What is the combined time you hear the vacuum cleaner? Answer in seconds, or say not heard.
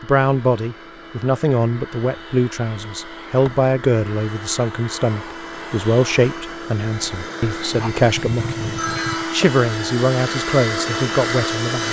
12 s.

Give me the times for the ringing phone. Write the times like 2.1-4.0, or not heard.
7.7-9.2.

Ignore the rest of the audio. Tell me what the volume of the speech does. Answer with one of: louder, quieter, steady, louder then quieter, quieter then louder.
steady.